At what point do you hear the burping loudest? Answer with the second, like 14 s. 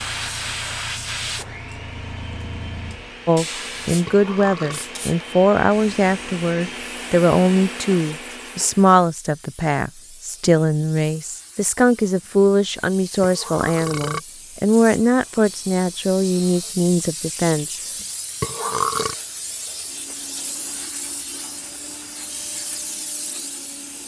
19 s.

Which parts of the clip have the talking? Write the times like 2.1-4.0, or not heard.
3.2-17.8.